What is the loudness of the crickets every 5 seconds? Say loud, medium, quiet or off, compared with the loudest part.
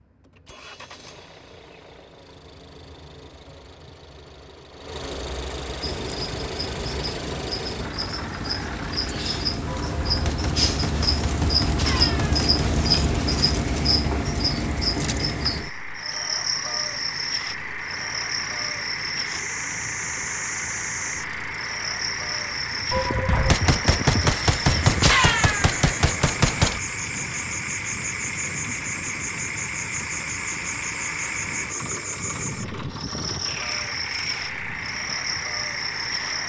off, medium, loud, medium, medium, medium, medium, medium.